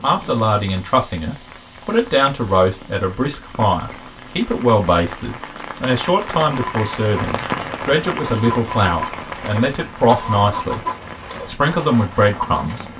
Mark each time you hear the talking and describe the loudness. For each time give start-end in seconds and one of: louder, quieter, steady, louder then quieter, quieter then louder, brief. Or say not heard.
0.0-10.8 steady
11.4-12.8 brief.